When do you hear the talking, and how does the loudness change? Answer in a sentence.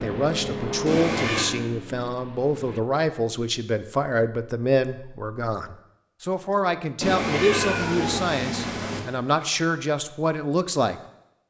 The talking can be heard from 0.0 to 11.4 s, at a steady volume.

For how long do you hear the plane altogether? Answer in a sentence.
You can hear the plane for 3 seconds altogether.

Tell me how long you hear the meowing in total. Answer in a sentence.
The meowing can be heard for 3 seconds in total.